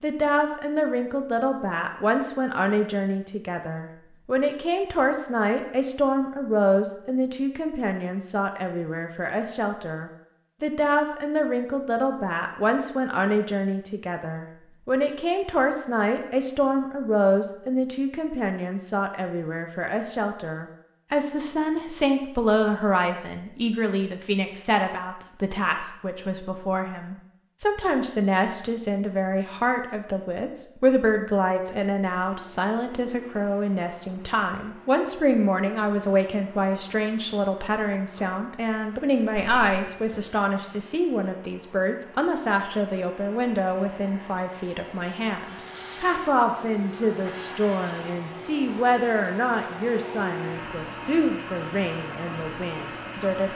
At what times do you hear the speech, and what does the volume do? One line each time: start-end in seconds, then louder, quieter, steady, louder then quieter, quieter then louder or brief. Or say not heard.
0.0-53.5 steady.